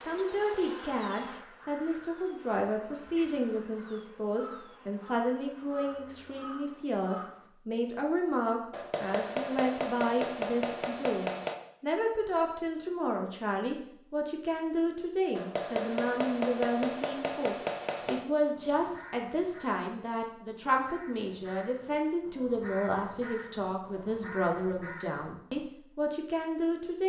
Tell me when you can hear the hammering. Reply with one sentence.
The hammering can be heard from 8.7 to 11.6 s and from 15.3 to 18.2 s.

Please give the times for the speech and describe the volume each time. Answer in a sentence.
The speech can be heard from 0.0 to 27.0 s, at a steady volume.